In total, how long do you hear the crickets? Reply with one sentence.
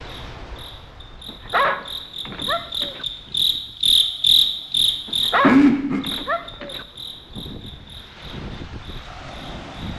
You can hear the crickets for 10 seconds altogether.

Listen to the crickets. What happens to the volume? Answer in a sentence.
The loudness of the crickets goes up, then down.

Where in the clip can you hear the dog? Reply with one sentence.
The dog can be heard from 1.2 to 3.0 s and from 5.0 to 6.8 s.